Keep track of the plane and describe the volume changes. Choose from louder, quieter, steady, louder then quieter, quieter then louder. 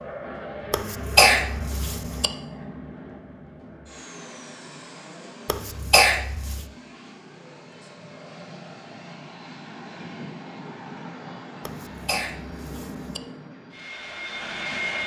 quieter then louder.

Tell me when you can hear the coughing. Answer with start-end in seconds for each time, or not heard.
0.7-2.3, 5.5-6.7, 11.7-13.2.